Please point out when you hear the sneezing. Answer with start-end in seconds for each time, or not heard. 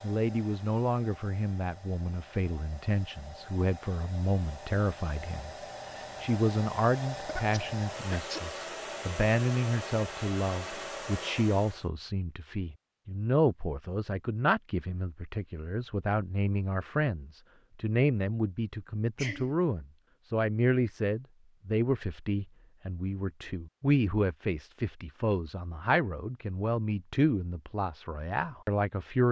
7.2-8.4, 19.1-19.6.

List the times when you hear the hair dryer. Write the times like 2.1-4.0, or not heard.
0.0-11.8.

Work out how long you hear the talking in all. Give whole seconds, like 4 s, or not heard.
29 s.